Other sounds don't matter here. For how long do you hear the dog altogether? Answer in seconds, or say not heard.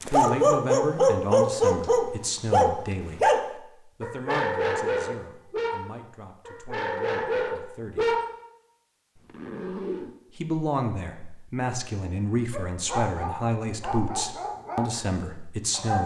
12 s.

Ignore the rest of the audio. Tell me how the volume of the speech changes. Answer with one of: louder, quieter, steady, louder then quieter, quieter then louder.
quieter then louder.